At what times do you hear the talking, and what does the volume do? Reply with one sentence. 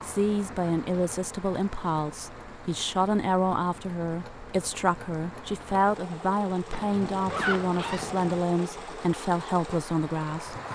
The talking can be heard from 0.1 to 10.6 s, at a steady volume.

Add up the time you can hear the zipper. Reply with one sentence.
The zipper can be heard for 2 seconds in total.